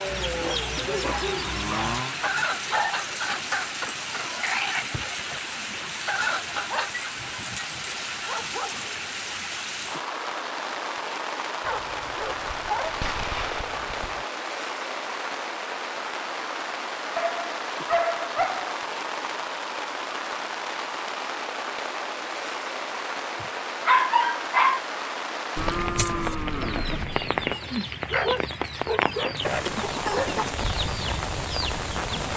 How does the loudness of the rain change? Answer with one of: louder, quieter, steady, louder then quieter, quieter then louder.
steady.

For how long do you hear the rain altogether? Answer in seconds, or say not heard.
32 s.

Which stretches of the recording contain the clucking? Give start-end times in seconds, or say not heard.
0.1-7.1, 25.9-32.3.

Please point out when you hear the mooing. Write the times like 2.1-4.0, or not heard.
0.6-2.1, 25.6-27.6.